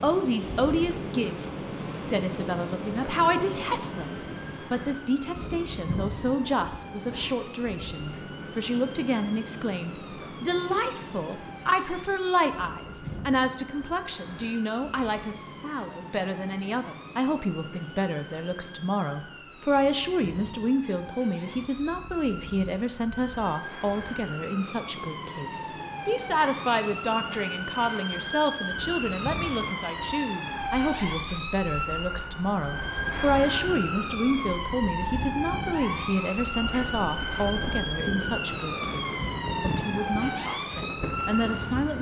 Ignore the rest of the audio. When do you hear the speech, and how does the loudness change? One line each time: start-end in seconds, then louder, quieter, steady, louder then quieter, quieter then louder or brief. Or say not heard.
0.0-41.9 steady.